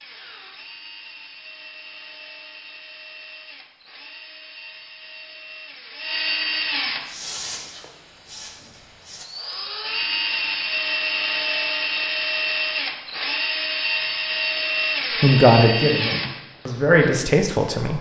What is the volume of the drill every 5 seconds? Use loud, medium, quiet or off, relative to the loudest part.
quiet, medium, loud, loud.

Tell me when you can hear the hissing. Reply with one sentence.
You can hear the hissing from 7.0 to 9.2 s.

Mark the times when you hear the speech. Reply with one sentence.
The speech can be heard from 15.2 to 17.9 s.